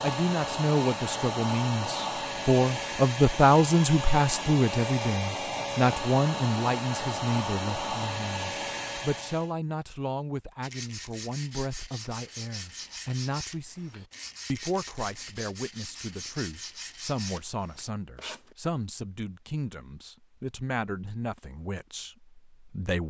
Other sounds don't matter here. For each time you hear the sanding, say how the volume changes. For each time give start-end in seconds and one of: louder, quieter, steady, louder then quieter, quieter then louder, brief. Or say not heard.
10.6-18.6 steady.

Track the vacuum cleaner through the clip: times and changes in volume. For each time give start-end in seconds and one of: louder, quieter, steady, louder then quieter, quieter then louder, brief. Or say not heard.
0.0-9.5 steady.